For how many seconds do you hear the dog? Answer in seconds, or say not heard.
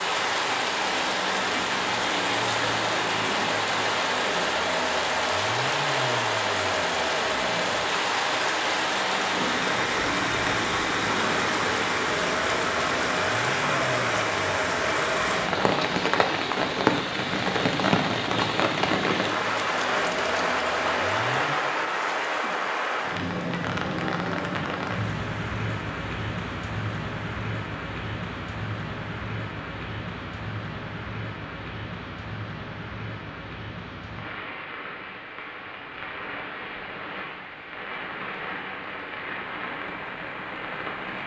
not heard.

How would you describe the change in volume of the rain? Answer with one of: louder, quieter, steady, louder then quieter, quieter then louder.
quieter.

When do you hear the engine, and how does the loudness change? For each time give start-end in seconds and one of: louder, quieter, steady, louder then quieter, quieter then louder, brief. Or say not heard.
0.0-21.5 steady.